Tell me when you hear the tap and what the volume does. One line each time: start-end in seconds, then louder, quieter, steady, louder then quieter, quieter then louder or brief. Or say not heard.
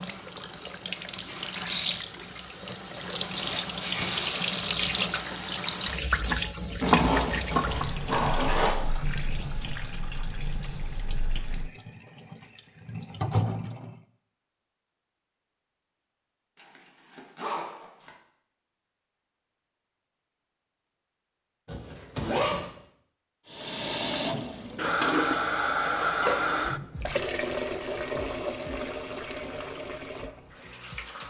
0.0-14.0 louder then quieter
23.4-31.2 quieter.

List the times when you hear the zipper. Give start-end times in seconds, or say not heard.
6.8-8.8, 16.6-18.1, 21.6-22.7.